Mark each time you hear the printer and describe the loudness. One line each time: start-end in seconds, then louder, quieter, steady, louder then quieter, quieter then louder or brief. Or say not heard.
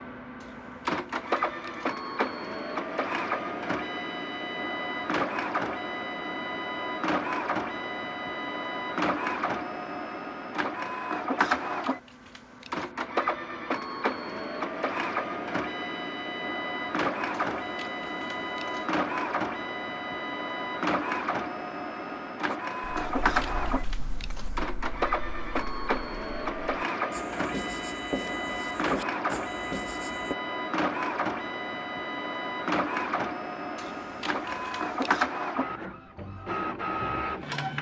0.0-37.7 steady.